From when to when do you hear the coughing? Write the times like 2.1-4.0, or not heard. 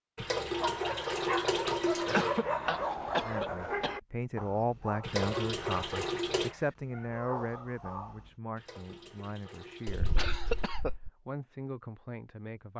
2.0-4.0, 9.8-11.1.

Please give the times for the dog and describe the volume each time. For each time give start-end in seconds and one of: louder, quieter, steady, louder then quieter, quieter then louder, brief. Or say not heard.
0.5-8.3 quieter.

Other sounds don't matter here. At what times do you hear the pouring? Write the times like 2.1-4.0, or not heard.
0.1-2.4, 5.0-6.5, 8.6-10.8.